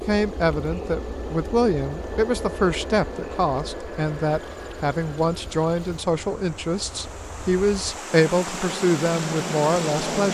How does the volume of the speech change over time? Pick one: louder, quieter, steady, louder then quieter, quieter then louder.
steady.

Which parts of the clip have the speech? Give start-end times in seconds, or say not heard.
0.1-10.3.